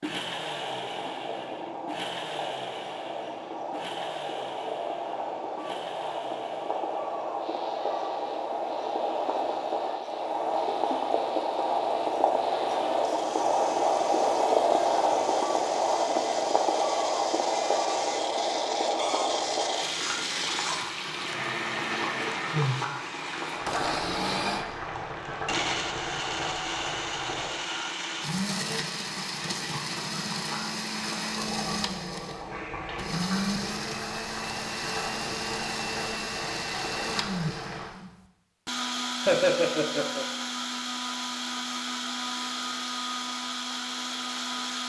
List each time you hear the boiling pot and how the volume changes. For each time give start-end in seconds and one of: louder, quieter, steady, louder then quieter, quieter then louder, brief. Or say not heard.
0.1-37.9 louder then quieter.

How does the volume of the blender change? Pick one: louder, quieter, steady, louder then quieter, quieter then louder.
louder.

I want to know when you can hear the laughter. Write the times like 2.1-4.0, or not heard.
39.2-40.2.